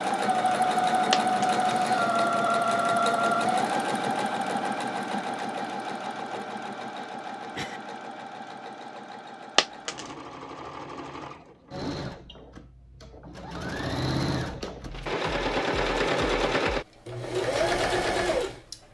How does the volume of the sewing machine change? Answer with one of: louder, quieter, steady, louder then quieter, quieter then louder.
quieter then louder.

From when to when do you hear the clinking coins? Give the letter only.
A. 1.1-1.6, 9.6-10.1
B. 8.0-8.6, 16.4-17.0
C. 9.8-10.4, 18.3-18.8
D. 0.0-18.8
A.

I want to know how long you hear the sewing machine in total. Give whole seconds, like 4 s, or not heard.
19 s.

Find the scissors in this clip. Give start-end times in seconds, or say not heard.
not heard.